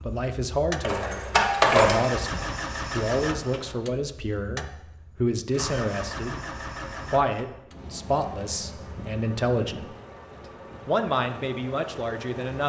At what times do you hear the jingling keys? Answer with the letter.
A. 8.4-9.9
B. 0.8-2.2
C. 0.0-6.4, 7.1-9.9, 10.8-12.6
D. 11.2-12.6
B.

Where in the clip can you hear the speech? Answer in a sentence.
The speech can be heard from 0.0 to 6.4 s, from 7.1 to 9.9 s and from 10.8 to 12.6 s.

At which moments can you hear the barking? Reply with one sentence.
You can't hear the barking here.